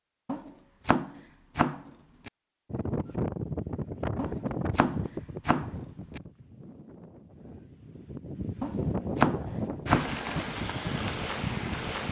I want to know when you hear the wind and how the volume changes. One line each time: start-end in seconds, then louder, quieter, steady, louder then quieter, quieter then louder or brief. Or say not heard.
2.7-12.0 quieter then louder.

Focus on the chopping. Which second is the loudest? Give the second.
9 s.